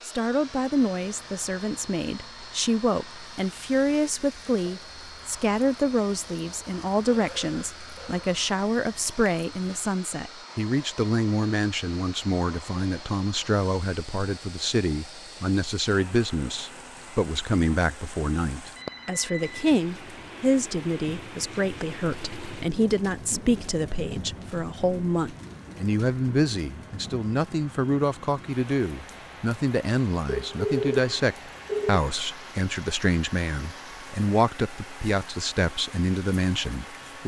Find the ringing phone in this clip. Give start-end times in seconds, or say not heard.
7.1-8.3, 18.8-19.7, 30.2-32.0.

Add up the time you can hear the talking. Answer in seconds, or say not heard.
37 s.